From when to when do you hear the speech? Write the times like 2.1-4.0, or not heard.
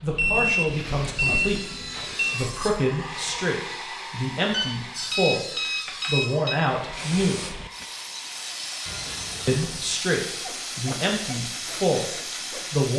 0.0-7.5, 9.4-12.9.